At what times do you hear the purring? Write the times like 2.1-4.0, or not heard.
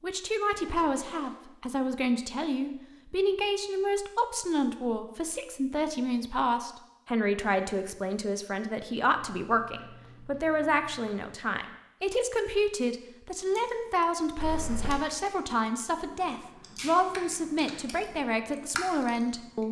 not heard.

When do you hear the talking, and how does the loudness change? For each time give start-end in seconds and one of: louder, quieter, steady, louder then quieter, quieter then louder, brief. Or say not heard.
0.0-19.6 steady.